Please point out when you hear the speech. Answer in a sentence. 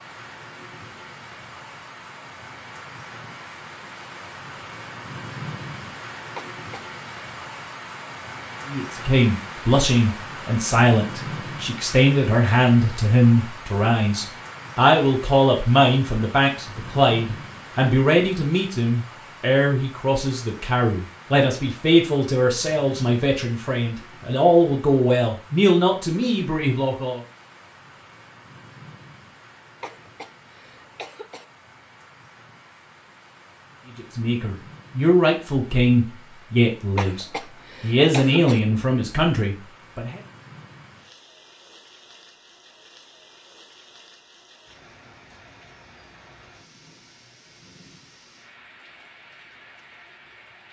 The speech can be heard from 8.7 to 27.2 s and from 34.0 to 40.2 s.